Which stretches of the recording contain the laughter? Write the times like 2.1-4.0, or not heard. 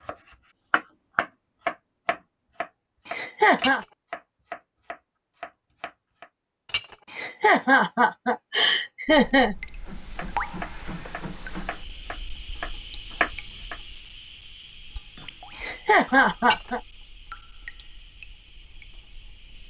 3.0-3.9, 7.1-9.6, 15.6-16.8.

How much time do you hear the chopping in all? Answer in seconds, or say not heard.
10 s.